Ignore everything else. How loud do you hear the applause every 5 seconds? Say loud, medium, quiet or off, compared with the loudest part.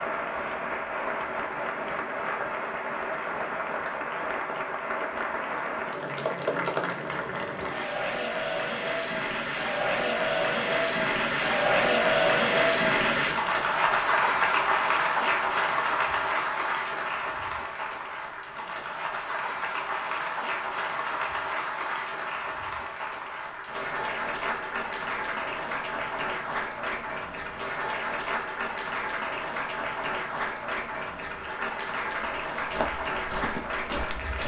medium, medium, loud, medium, medium, medium, medium.